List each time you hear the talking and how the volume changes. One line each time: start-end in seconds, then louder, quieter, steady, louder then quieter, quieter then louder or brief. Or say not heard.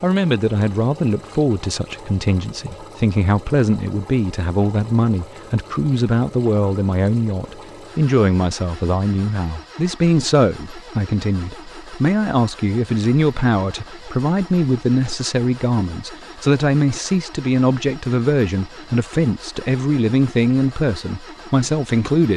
0.0-22.3 steady.